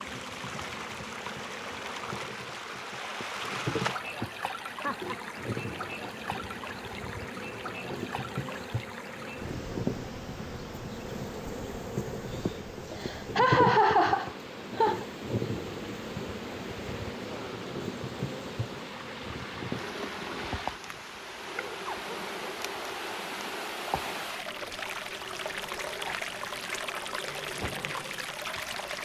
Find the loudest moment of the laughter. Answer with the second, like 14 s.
14 s.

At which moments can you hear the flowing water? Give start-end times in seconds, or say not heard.
0.0-29.0.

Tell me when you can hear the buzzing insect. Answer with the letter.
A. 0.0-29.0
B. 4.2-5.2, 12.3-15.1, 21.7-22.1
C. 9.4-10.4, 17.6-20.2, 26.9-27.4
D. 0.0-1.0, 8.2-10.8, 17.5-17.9
A.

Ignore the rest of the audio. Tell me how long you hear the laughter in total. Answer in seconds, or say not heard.
4 s.